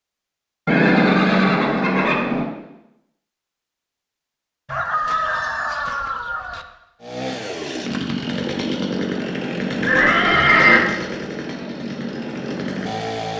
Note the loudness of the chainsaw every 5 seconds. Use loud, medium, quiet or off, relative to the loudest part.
off, loud, loud.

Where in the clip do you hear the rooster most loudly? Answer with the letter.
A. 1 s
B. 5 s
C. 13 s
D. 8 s
B.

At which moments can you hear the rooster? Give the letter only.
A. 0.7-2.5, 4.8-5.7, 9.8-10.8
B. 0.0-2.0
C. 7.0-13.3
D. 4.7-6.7
D.